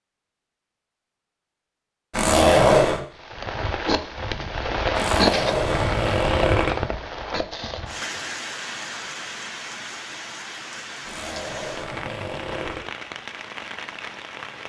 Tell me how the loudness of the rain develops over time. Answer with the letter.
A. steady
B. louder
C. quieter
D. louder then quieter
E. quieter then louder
C.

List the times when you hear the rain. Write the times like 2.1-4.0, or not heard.
3.1-14.6.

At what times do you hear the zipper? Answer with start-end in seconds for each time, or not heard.
2.1-3.0, 5.0-6.7, 11.1-12.8.